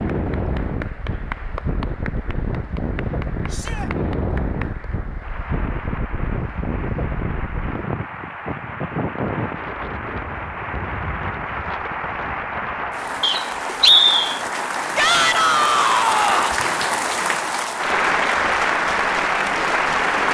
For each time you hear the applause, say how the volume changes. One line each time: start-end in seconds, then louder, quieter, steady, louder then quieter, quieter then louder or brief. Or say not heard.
0.0-20.3 louder.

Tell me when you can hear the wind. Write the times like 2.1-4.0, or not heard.
0.0-13.2.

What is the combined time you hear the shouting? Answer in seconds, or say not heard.
2 s.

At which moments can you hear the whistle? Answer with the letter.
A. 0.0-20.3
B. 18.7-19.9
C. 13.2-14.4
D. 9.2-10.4
C.